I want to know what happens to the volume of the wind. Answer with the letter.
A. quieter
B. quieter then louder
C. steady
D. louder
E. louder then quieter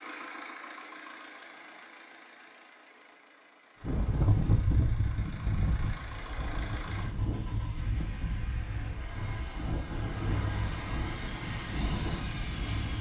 A.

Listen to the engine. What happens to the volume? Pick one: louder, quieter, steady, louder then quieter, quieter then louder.
quieter then louder.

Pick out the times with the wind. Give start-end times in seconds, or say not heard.
3.8-12.9.